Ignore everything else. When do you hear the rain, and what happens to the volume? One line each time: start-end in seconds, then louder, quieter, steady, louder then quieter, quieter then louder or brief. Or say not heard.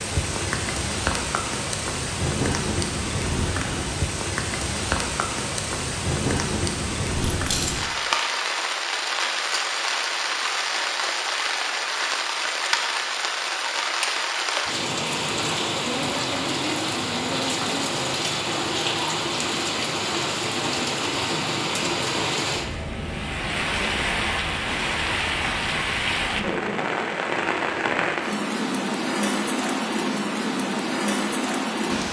0.0-32.0 steady.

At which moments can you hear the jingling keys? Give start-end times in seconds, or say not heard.
7.2-7.9.